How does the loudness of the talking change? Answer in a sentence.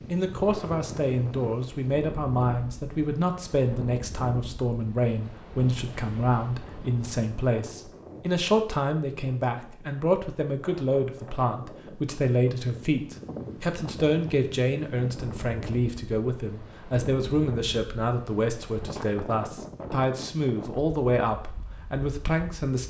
The volume of the talking stays about the same.